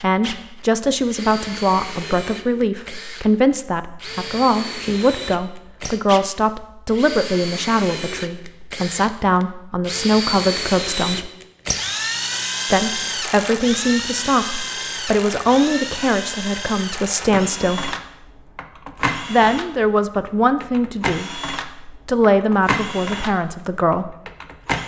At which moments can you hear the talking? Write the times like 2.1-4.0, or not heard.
0.0-11.3, 12.7-17.9, 19.3-24.1.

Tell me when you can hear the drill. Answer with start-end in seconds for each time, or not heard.
0.0-24.8.